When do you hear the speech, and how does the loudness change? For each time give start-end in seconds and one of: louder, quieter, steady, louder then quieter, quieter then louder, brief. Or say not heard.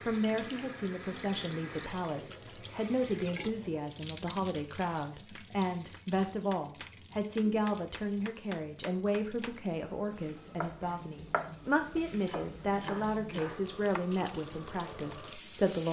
0.1-15.8 steady.